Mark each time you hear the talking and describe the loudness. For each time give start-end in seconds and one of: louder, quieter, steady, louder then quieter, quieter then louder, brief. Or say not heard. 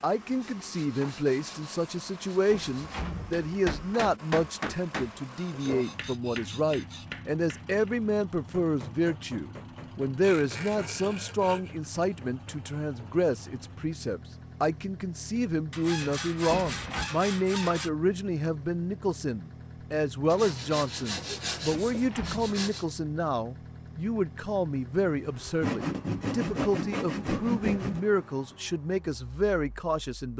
0.0-30.3 steady.